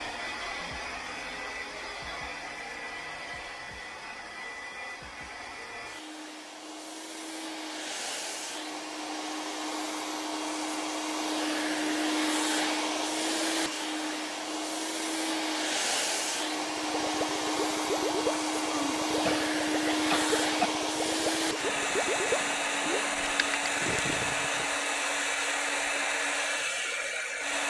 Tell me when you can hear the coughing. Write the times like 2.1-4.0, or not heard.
18.7-20.7.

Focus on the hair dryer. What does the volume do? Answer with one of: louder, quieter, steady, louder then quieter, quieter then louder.
louder.